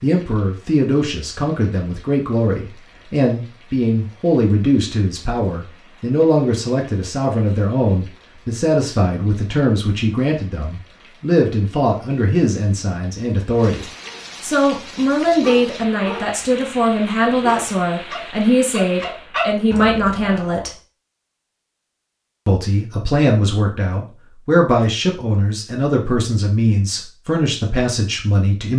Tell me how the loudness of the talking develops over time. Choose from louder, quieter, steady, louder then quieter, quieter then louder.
steady.